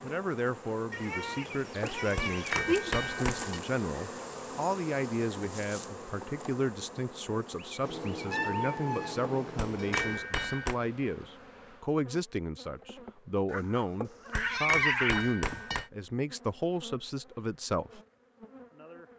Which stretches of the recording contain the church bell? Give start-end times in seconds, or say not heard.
not heard.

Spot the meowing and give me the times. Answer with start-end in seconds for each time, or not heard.
0.9-3.0, 7.8-10.2, 13.5-15.2.